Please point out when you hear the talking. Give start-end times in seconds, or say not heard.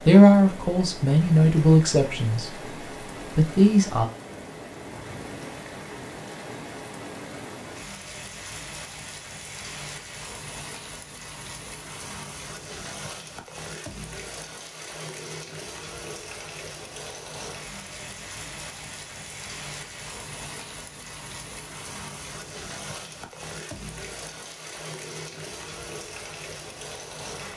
0.1-2.7, 3.4-4.0.